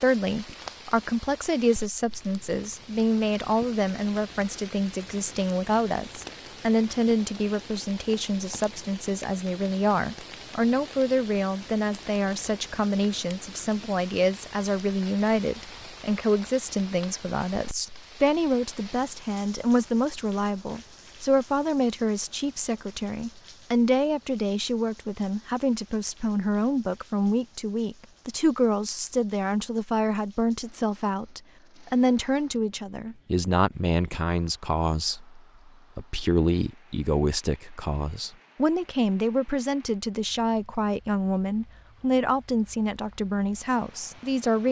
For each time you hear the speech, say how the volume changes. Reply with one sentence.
The speech can be heard from 0.0 to 44.6 s, at a steady volume.